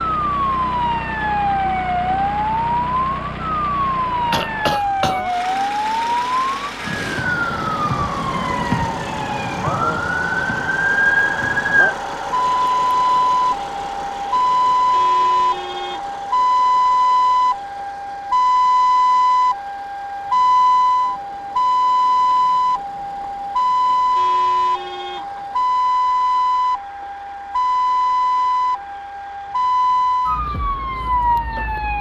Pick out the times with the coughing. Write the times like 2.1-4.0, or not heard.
4.3-5.2.